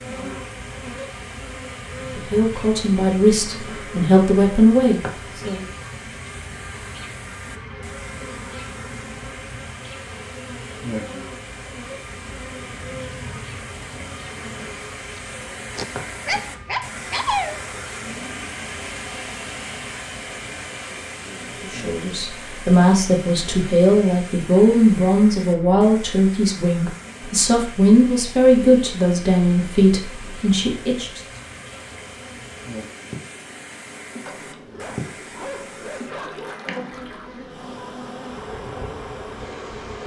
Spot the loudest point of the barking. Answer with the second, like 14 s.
17 s.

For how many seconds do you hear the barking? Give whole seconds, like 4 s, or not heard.
5 s.